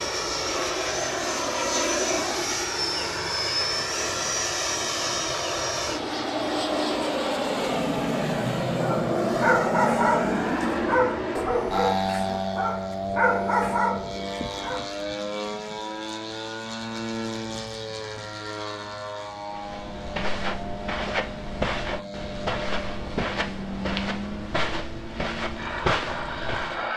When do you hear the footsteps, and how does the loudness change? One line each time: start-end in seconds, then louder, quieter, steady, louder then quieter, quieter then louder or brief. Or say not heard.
19.5-26.9 steady.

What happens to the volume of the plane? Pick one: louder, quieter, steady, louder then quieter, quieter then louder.
quieter.